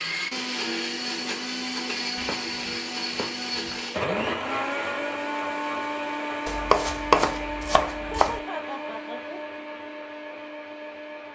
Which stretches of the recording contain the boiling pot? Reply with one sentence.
You can't hear the boiling pot here.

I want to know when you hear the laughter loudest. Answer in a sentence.
The volume of the laughter peaks at 8 seconds.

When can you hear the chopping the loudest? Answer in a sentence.
The loudest moment of the chopping is at 7 seconds.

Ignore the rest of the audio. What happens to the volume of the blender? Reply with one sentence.
The loudness of the blender goes down.